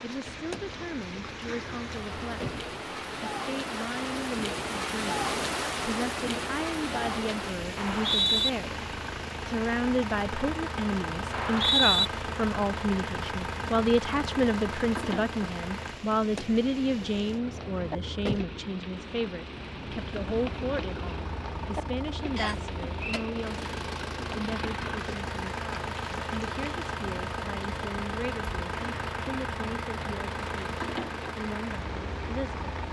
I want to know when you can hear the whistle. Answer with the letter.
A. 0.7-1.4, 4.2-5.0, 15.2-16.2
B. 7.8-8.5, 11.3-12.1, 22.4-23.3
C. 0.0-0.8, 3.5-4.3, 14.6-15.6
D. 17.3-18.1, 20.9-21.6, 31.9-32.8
B.